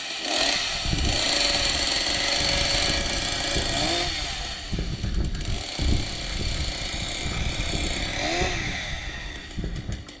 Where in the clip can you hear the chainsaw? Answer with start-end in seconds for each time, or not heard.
0.0-10.1.